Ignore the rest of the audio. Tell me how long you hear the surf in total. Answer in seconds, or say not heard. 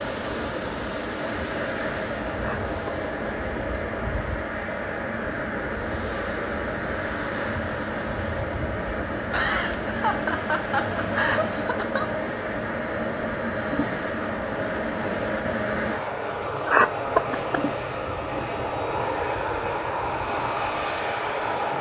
22 s.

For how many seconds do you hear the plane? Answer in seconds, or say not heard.
22 s.